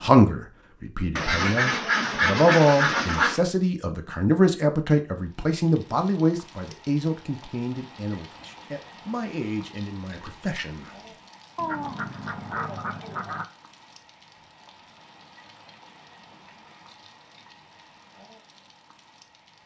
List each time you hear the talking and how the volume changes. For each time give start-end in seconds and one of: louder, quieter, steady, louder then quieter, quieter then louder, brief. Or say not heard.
0.0-10.9 louder then quieter.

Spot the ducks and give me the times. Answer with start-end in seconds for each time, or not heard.
1.1-3.4, 11.6-13.4.